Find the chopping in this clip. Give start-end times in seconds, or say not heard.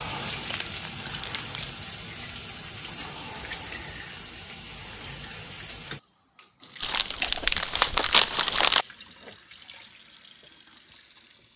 not heard.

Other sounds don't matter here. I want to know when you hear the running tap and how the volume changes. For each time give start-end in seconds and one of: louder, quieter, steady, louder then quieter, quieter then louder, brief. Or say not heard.
0.0-11.5 quieter.